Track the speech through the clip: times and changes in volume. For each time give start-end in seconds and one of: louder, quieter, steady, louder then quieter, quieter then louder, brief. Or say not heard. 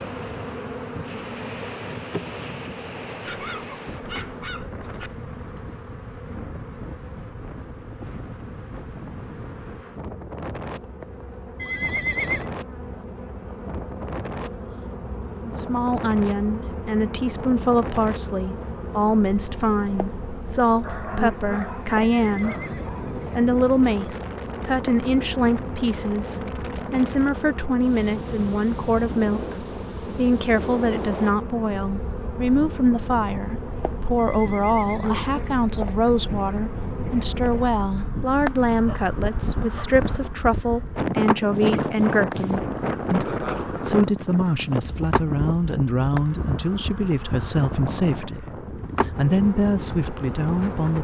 15.4-22.6 steady
23.3-50.9 steady.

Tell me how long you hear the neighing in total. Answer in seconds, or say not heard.
4 s.